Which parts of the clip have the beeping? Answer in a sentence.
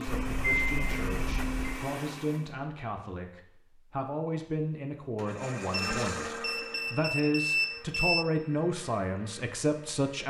The beeping can be heard from 0.1 to 1.8 s and from 5.7 to 8.2 s.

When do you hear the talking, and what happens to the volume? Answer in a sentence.
You can hear the talking from 0.0 to 10.2 s, getting louder.